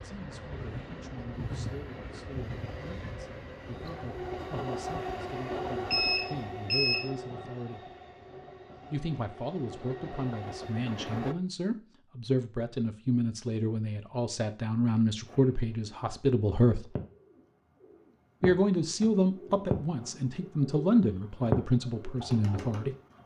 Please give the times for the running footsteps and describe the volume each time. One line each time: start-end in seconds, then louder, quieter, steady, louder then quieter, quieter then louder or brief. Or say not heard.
not heard.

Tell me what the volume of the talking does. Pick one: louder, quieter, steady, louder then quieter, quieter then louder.
louder.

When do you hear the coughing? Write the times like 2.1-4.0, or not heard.
not heard.